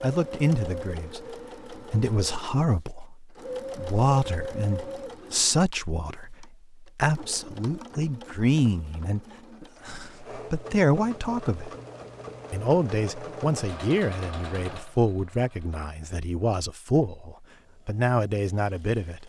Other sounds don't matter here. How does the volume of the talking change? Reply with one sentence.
The volume of the talking stays about the same.